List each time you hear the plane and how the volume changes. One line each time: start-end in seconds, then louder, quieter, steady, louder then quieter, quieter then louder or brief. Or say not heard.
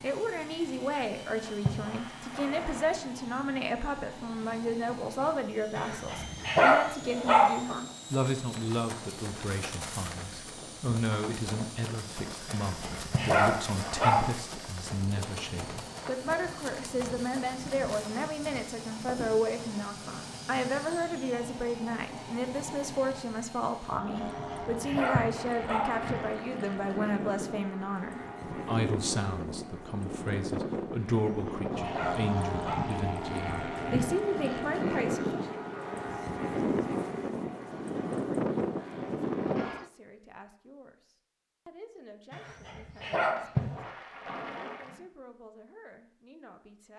0.0-39.9 louder.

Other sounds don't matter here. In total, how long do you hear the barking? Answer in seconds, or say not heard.
9 s.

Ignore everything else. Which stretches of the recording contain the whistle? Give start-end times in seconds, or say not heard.
not heard.